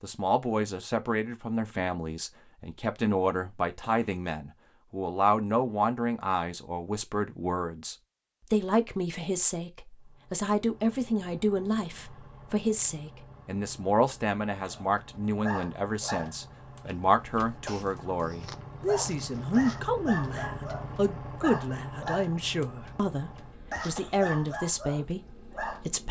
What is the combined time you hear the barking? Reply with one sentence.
The barking can be heard for 11 seconds in total.